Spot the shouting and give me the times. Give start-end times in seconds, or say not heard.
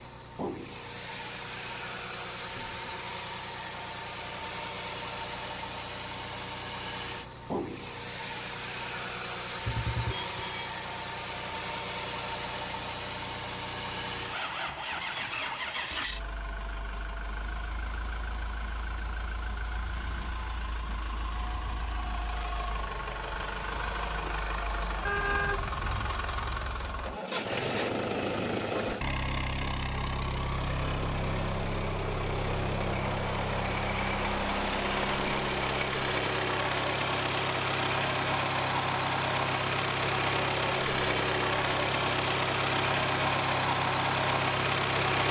not heard.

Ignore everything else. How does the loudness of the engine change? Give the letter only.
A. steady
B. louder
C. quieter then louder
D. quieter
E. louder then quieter
B.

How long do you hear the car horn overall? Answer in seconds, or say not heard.
2 s.